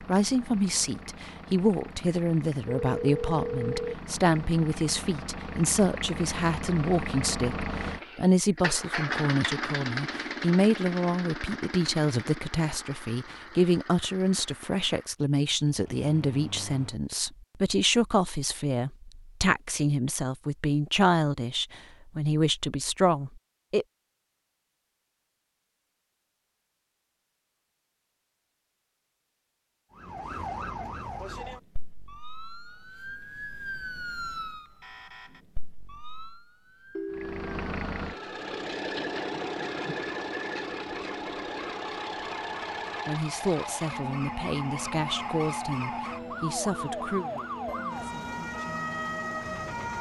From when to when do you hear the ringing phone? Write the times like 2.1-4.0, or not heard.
2.6-4.0, 37.0-37.7.